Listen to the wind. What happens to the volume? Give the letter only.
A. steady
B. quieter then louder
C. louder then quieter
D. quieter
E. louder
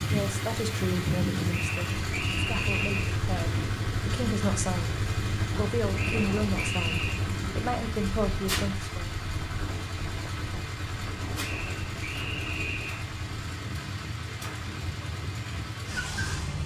D.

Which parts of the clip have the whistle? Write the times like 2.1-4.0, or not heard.
1.5-3.1, 6.0-7.2, 11.4-13.1.